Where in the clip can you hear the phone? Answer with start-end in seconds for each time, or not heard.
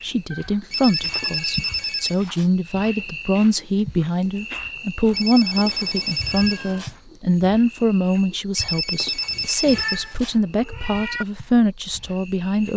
0.7-2.5, 5.1-7.0, 8.6-10.3.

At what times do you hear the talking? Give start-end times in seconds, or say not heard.
0.0-12.7.